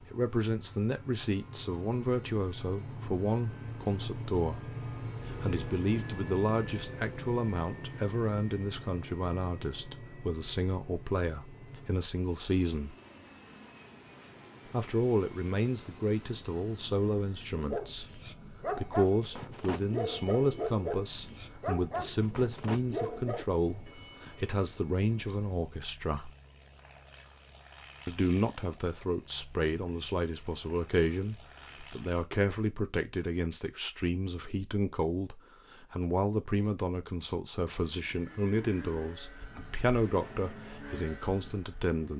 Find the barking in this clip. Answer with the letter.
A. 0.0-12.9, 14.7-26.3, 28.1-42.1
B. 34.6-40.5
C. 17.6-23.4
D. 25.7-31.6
C.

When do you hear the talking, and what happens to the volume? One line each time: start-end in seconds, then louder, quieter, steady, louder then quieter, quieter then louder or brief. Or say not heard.
0.0-12.9 steady
14.7-26.3 steady
28.1-42.1 steady.